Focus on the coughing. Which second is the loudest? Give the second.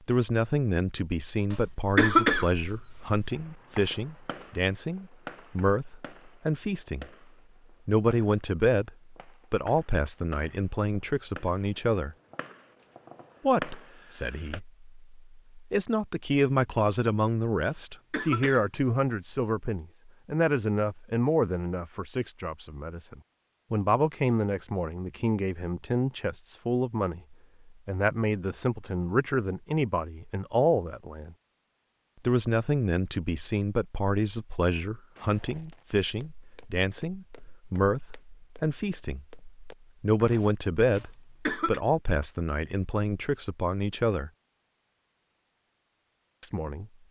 2 s.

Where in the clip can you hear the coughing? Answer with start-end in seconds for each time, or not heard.
1.5-3.4, 17.6-19.5, 41.0-41.8.